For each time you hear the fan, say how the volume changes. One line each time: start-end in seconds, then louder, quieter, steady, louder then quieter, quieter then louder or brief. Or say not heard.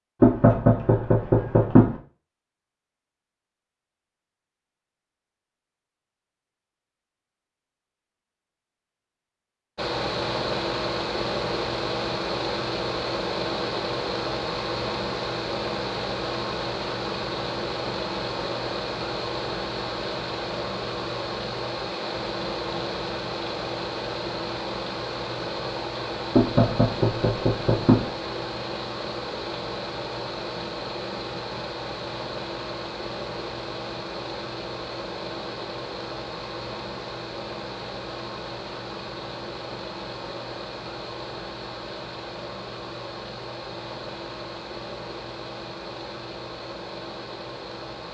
9.8-48.0 quieter.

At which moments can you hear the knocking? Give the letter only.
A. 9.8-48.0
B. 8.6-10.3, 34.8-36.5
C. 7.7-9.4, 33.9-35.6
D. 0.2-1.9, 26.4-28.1
D.